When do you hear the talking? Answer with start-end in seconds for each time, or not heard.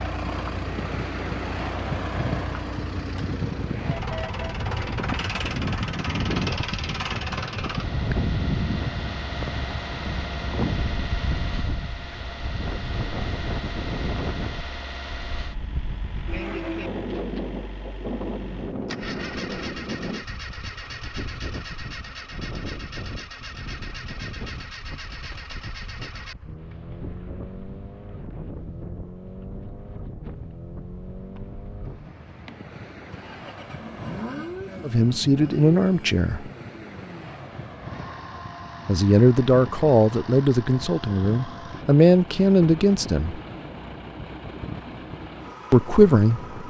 34.8-36.5, 38.9-43.4, 45.7-46.5.